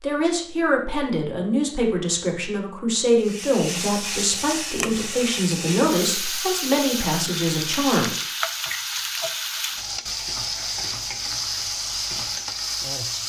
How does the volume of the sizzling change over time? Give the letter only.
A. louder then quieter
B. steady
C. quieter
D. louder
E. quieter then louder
B.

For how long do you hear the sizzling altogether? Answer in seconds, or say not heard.
10 s.